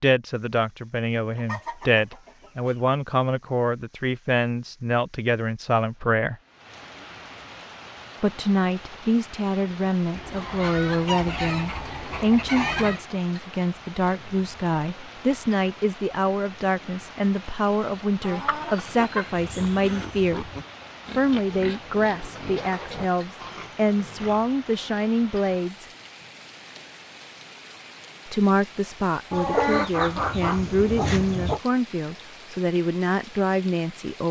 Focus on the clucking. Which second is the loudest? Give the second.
30 s.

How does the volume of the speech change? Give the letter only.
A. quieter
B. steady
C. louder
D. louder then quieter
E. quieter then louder
B.